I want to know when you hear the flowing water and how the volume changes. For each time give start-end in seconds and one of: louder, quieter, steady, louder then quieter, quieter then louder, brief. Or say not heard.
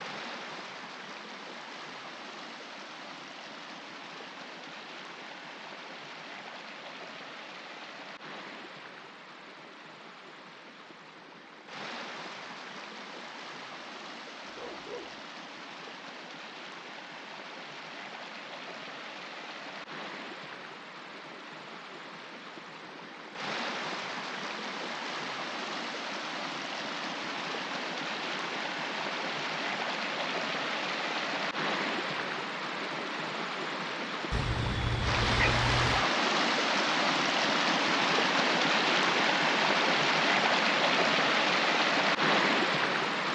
0.0-43.3 louder.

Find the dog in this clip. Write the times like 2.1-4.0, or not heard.
14.4-15.2, 34.3-36.1.